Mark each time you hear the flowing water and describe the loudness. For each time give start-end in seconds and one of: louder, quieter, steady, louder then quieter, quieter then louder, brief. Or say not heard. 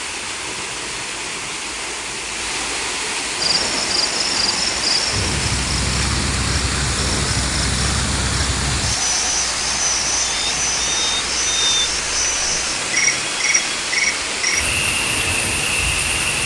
0.0-16.4 steady.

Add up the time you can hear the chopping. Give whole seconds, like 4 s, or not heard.
not heard.